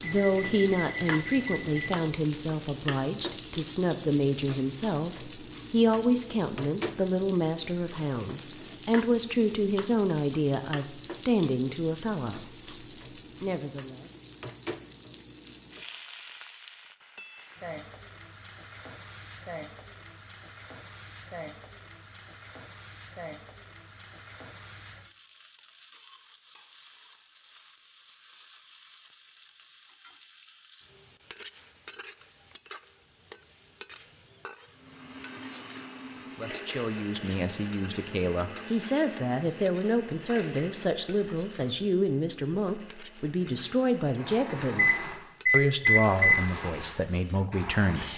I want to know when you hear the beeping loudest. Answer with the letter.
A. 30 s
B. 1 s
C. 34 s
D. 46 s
D.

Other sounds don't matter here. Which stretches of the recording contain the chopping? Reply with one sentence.
The chopping can't be heard in this clip.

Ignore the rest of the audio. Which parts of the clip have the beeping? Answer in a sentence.
You can hear the beeping from 0.0 to 1.9 s and from 44.8 to 46.5 s.